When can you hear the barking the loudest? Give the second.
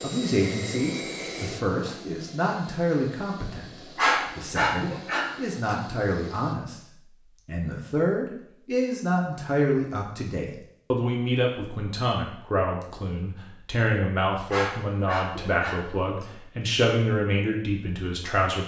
4 s.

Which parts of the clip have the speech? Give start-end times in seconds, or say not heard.
0.0-6.8, 7.5-18.6.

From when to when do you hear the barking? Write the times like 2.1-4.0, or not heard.
4.0-5.8, 14.5-16.2.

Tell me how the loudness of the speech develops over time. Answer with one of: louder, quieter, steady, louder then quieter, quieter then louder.
steady.